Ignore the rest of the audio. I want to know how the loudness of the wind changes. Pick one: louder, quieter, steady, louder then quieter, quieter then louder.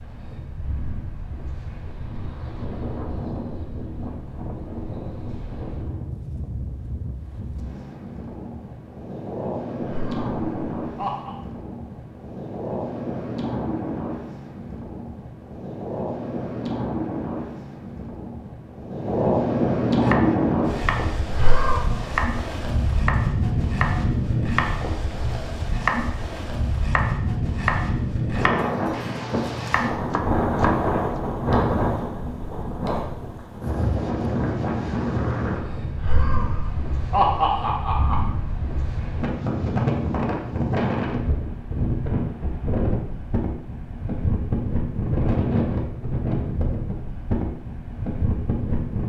louder.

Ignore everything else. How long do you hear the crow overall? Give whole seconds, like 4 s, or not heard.
not heard.